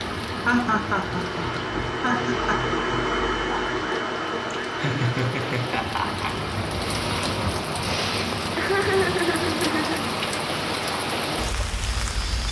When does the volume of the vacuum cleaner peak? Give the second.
3 s.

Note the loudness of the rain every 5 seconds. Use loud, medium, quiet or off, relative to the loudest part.
medium, loud, loud.